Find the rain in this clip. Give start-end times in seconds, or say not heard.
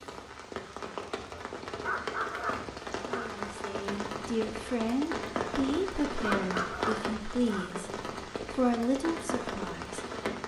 0.0-10.4.